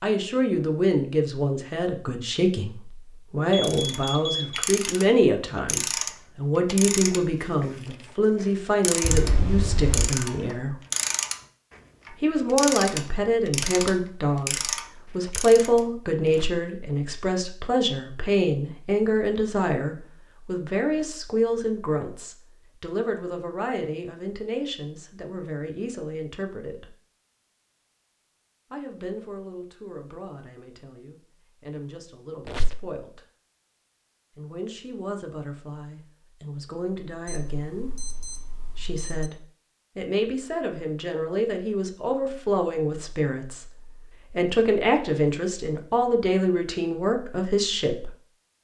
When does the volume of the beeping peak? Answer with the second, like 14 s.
4 s.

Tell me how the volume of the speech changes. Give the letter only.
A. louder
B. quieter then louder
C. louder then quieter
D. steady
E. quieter
B.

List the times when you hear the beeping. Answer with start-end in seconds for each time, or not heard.
3.5-4.7, 37.2-39.3.